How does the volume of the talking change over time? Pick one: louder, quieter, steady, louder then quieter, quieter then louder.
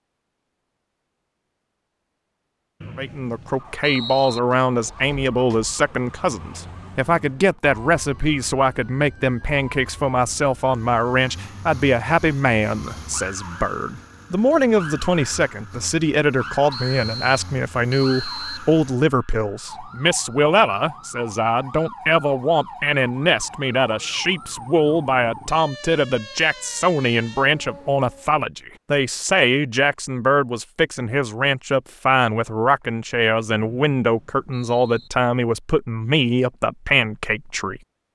steady.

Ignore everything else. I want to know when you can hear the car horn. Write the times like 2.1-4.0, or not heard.
not heard.